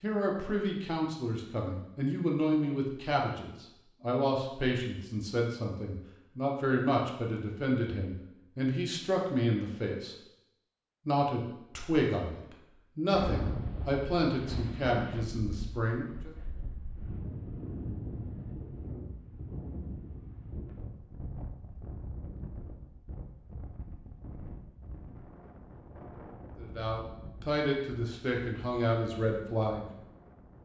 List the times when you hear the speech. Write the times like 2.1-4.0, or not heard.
0.0-10.2, 11.1-16.3, 26.6-29.9.